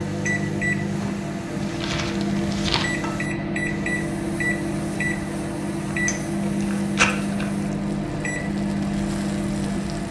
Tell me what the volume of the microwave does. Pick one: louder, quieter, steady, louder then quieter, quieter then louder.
steady.